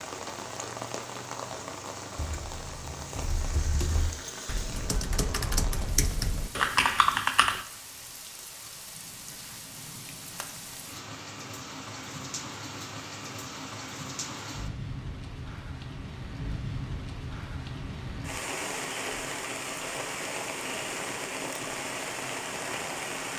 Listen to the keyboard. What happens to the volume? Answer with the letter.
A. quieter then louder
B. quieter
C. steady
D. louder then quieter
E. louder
E.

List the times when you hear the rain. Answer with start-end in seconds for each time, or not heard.
0.0-23.3.